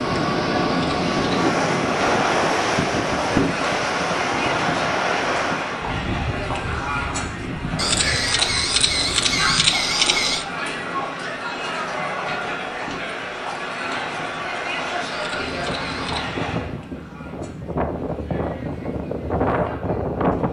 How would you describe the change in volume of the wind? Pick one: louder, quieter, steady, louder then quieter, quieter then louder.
quieter then louder.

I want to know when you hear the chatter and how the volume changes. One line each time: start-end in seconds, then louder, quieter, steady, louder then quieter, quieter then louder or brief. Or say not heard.
0.0-20.4 quieter.